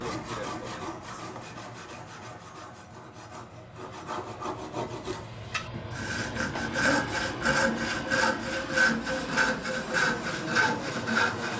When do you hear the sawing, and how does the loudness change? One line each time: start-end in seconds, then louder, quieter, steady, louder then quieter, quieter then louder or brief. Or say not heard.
0.0-11.5 louder.